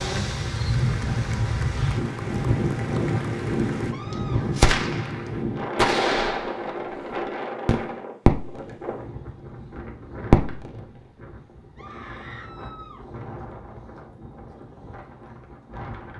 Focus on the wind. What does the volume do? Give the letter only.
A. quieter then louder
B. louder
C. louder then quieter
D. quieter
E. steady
D.